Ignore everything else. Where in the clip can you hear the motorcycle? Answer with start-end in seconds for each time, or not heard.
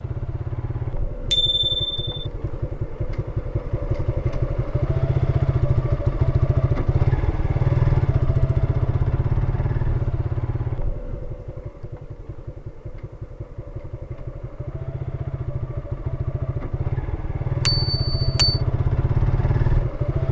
0.0-20.2.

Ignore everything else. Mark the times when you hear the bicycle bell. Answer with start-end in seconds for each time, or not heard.
1.3-2.1, 17.6-18.6.